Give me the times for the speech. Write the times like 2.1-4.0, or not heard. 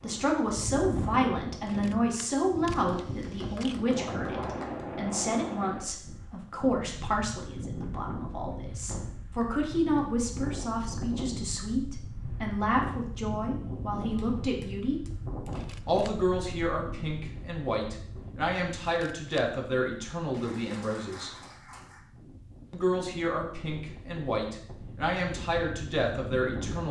0.0-15.0, 15.8-21.3, 22.7-26.8.